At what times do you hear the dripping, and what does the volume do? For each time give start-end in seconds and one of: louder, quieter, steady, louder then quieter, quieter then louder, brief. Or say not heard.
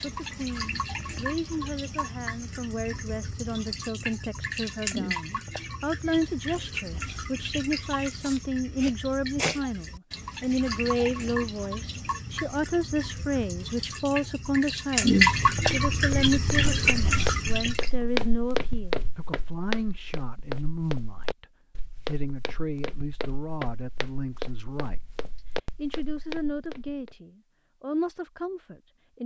0.0-17.9 louder.